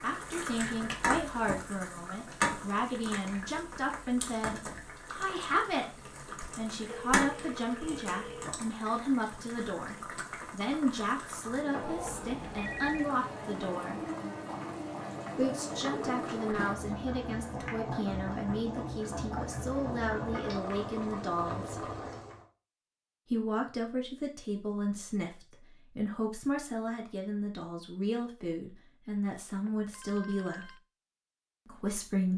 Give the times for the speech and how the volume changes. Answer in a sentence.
The speech can be heard from 0.0 to 14.0 s, at a steady volume; from 15.3 to 21.9 s, at a steady volume; from 23.2 to 30.7 s, at a steady volume; and briefly from 31.6 to 32.3 s.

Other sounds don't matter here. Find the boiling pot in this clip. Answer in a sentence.
You can hear the boiling pot from 0.0 to 22.4 s.